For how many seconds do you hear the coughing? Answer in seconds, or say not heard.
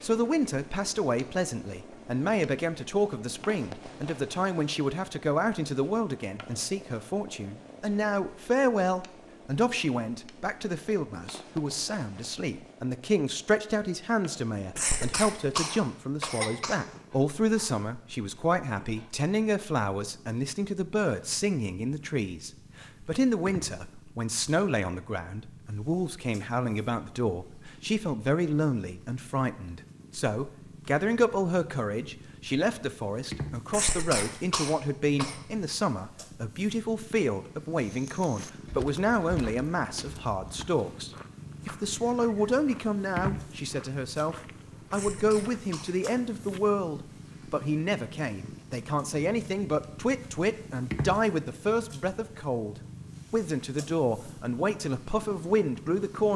5 s.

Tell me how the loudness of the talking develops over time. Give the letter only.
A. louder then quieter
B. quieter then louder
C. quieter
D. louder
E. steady
E.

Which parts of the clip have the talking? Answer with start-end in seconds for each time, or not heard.
0.0-56.3.